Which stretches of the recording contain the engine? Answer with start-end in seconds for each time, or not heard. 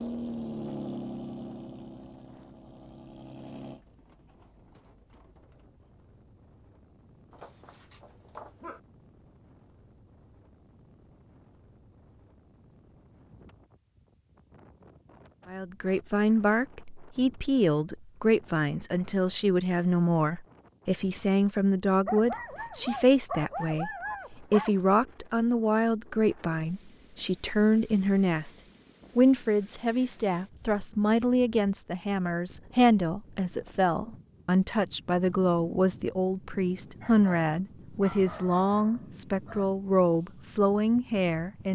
0.0-3.8.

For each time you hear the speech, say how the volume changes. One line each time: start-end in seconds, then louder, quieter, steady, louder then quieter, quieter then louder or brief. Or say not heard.
15.4-28.6 steady
29.1-41.7 steady.